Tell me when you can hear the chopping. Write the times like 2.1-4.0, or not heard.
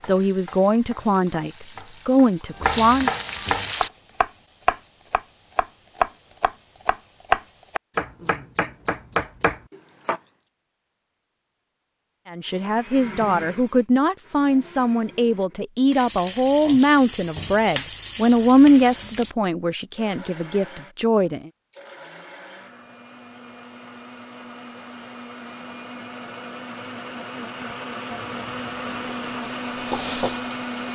0.0-10.2.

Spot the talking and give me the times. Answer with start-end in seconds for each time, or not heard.
0.0-3.1, 12.3-21.5.